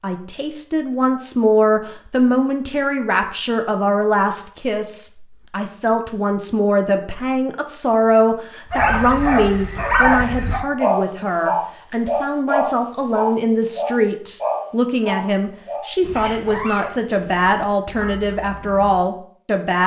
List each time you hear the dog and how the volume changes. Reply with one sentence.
You can hear the dog from 8.7 to 19.0 s, getting quieter.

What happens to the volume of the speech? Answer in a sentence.
The volume of the speech stays about the same.